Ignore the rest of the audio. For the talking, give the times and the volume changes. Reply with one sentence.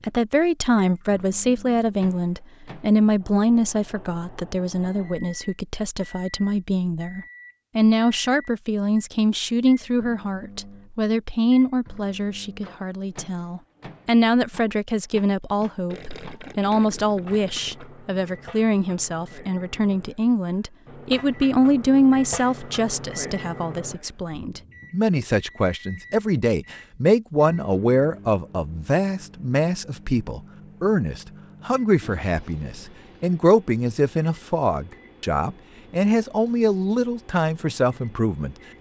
The talking can be heard from 0.0 to 38.5 s, at a steady volume.